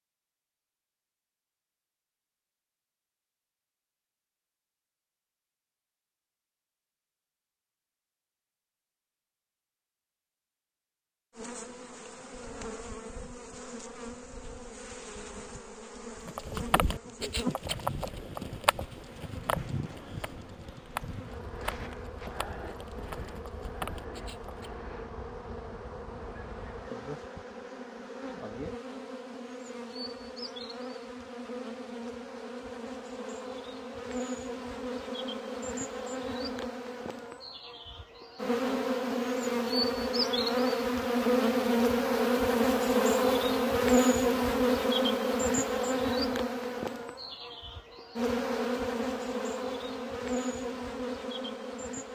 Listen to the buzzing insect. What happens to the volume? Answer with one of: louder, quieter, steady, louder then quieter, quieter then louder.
louder.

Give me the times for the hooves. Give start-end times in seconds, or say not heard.
16.2-24.7.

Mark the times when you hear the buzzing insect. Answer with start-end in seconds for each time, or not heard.
11.3-52.1.